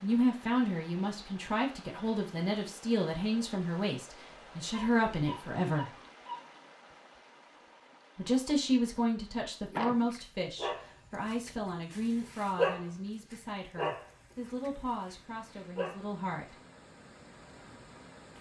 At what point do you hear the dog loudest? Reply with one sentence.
The volume of the dog peaks at 13 seconds.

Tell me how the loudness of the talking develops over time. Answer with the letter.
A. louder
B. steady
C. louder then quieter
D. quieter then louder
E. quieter
E.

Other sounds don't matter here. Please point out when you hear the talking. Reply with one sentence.
The talking can be heard from 0.0 to 6.0 s and from 8.2 to 16.6 s.